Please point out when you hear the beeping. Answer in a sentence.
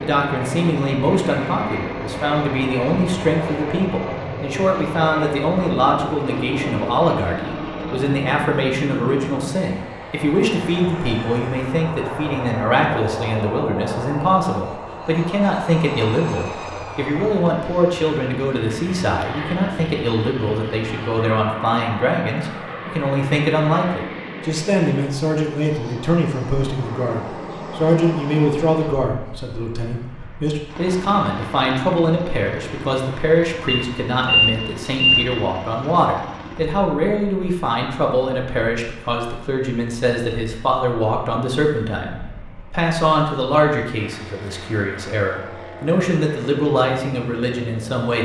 The beeping can be heard from 33.6 to 35.2 s.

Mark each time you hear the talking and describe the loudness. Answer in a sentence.
You can hear the talking from 0.0 to 48.1 s, at a steady volume.